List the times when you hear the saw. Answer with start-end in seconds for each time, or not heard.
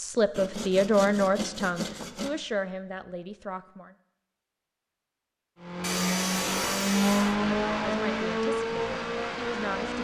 0.3-2.4, 5.8-7.3.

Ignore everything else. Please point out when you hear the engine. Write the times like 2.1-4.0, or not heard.
5.5-9.9.